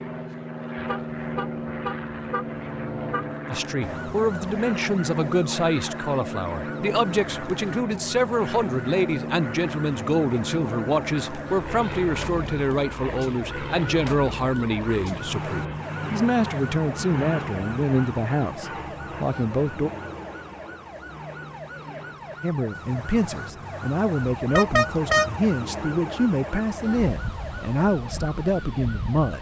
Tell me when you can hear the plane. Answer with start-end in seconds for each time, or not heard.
0.0-29.3.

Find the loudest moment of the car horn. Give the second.
25 s.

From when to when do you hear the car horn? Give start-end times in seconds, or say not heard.
0.8-3.4, 24.4-25.3.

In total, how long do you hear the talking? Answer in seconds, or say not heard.
23 s.